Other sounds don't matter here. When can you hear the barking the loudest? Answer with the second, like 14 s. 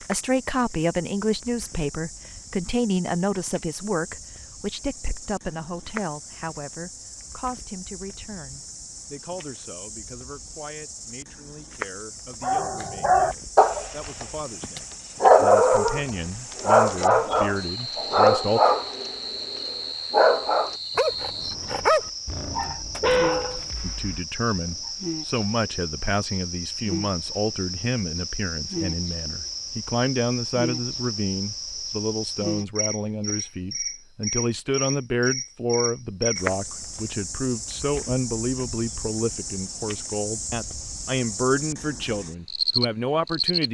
15 s.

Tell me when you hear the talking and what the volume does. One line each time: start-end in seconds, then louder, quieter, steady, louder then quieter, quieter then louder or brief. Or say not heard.
0.0-18.6 quieter then louder
23.8-43.6 steady.